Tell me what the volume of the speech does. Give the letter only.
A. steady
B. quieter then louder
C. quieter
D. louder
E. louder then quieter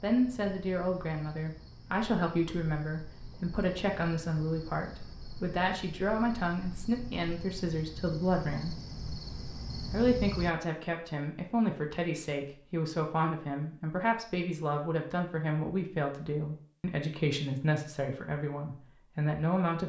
A.